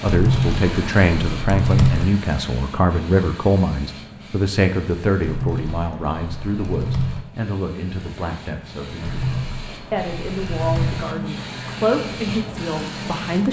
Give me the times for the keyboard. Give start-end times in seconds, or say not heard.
0.1-2.1, 5.2-7.2, 9.0-11.1.